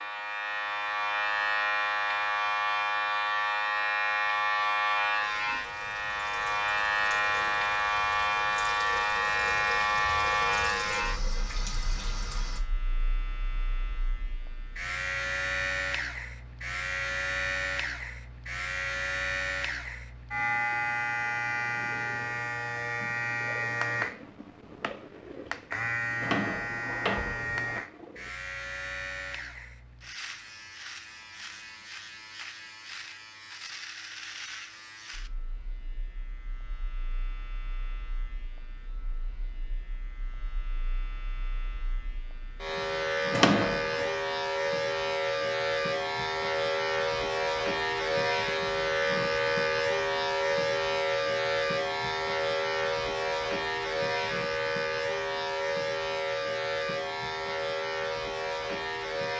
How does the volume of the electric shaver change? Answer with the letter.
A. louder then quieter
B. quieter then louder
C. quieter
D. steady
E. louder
B.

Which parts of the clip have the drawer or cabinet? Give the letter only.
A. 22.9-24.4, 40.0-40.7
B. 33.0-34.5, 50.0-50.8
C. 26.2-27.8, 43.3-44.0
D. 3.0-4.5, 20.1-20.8
C.